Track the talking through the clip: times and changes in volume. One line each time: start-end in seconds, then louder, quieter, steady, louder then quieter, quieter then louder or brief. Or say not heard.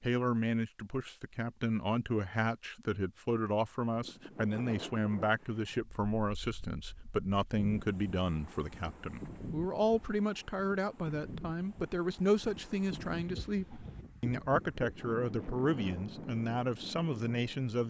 0.0-17.8 steady.